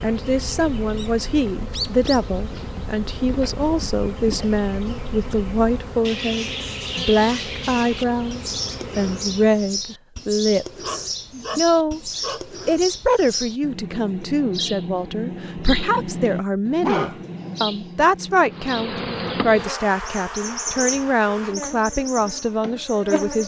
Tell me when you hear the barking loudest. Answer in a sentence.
The volume of the barking peaks at 17 seconds.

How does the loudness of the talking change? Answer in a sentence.
The loudness of the talking stays about the same.